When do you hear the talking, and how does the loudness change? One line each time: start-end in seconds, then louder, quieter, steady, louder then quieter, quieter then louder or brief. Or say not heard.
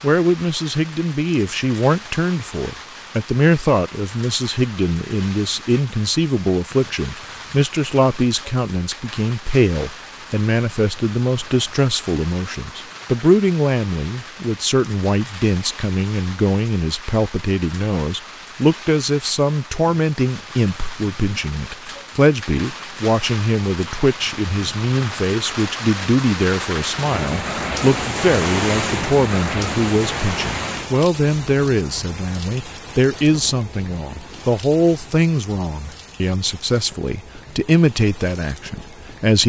0.0-39.4 steady.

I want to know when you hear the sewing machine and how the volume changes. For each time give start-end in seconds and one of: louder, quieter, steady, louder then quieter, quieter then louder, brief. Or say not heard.
not heard.